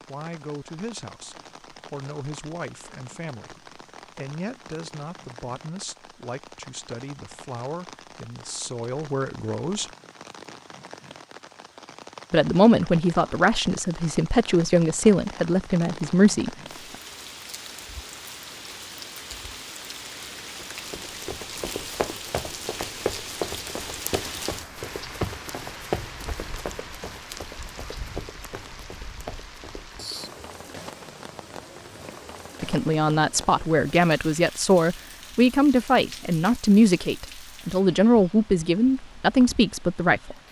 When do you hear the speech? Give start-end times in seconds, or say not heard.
0.1-9.9, 12.3-16.5, 32.6-40.4.